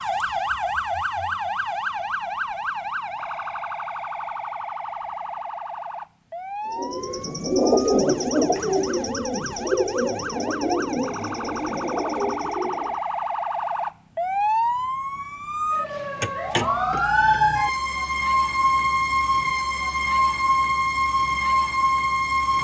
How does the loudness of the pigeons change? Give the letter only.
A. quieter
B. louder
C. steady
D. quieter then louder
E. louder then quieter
A.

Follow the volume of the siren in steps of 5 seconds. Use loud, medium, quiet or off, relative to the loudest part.
medium, quiet, medium, loud, loud.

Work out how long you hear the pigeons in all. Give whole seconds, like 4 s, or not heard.
6 s.